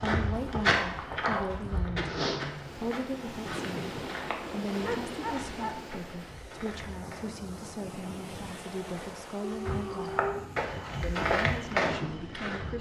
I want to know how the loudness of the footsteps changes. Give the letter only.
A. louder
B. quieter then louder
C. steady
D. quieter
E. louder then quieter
B.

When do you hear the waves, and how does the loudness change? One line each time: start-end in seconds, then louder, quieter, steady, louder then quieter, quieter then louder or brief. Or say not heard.
2.4-12.6 quieter.